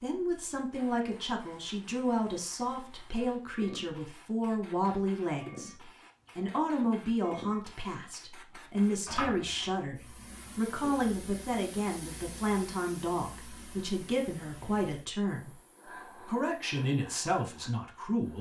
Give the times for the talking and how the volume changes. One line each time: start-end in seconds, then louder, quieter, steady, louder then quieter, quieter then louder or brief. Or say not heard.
0.0-18.3 steady.